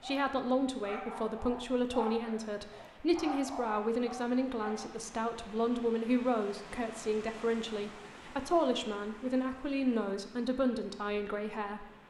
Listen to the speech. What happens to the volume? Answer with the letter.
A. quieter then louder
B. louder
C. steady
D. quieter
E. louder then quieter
C.